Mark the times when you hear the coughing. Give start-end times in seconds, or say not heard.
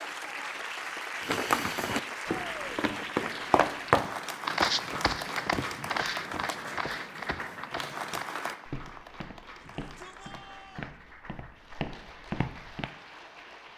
not heard.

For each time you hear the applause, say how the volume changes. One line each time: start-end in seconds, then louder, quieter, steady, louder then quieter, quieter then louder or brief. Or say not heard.
0.0-13.7 quieter.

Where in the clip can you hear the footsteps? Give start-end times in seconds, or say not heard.
1.2-12.9.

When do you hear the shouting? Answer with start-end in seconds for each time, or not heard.
2.2-2.7, 9.6-10.9.